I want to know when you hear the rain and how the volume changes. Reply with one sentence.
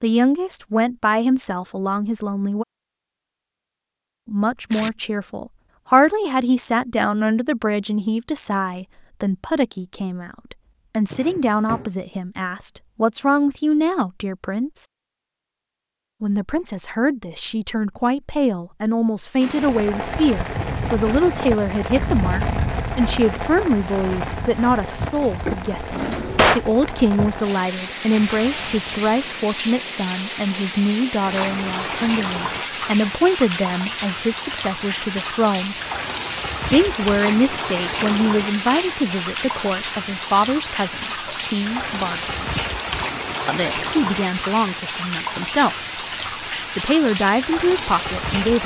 The rain can be heard from 19.4 to 48.6 s, at a steady volume.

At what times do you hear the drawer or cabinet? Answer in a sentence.
The drawer or cabinet can be heard from 11.1 to 11.9 s, from 25.9 to 26.6 s and from 38.0 to 39.0 s.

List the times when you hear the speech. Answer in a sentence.
You can hear the speech from 0.0 to 2.6 s, from 4.2 to 14.8 s, from 16.2 to 35.8 s, from 36.7 to 42.5 s, from 43.5 to 45.9 s and from 46.8 to 48.6 s.